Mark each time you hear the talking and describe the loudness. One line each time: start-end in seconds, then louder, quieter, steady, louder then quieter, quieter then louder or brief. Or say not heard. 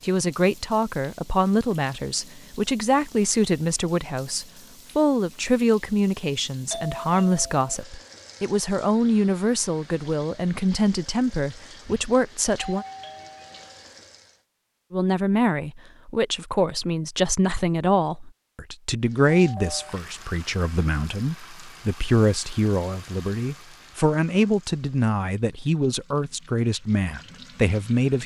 0.0-12.8 steady
14.9-28.2 steady.